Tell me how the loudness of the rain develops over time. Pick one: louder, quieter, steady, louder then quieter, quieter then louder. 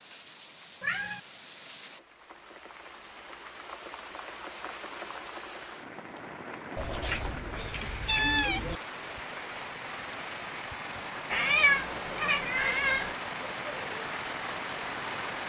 louder.